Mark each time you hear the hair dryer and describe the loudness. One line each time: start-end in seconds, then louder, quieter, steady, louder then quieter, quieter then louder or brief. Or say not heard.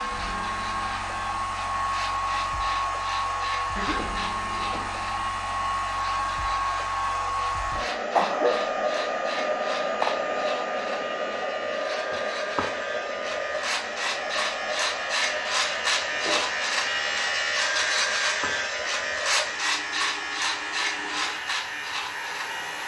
0.0-22.8 quieter.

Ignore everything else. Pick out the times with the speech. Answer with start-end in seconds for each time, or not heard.
not heard.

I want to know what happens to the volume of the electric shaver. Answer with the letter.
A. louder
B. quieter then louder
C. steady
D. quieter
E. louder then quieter
A.